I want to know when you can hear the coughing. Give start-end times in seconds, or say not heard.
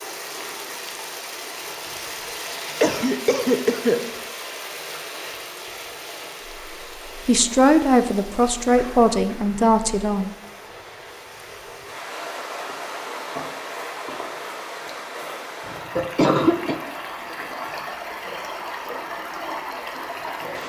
2.8-4.0, 8.8-9.6, 15.7-16.8.